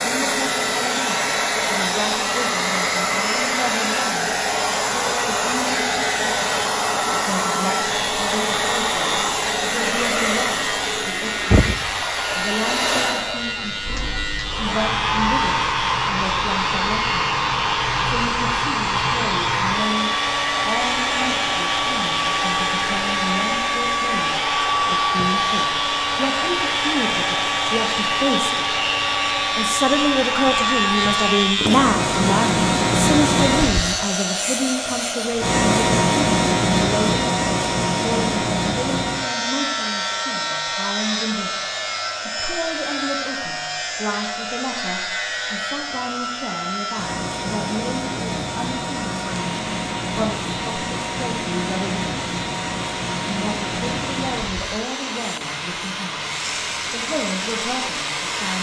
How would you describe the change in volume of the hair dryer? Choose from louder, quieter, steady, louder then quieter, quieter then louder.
quieter.